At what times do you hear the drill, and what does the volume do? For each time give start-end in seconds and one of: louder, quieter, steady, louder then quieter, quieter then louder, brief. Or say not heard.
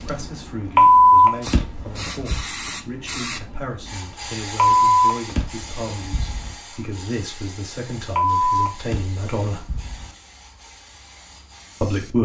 not heard.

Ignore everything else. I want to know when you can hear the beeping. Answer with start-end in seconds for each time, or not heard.
0.8-2.5, 4.5-6.5, 8.2-10.1.